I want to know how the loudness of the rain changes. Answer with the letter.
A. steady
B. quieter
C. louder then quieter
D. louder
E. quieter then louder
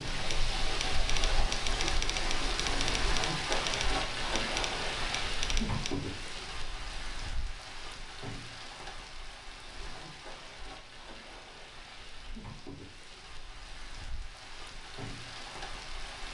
B.